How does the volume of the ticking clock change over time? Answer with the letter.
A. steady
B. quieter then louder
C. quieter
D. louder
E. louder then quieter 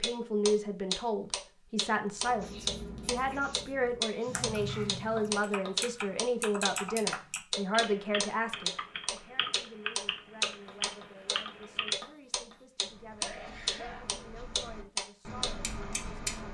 A.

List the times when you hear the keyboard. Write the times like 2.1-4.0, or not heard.
4.2-12.0.